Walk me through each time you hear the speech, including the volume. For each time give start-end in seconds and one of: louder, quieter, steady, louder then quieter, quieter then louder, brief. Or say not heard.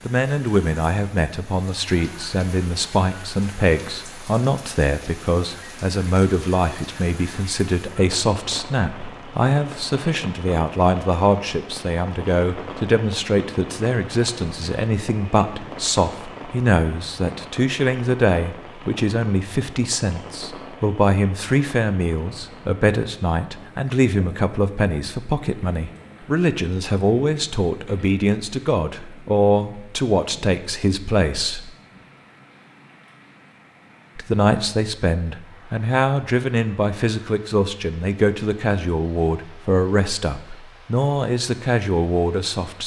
0.1-31.7 steady
34.1-42.8 steady.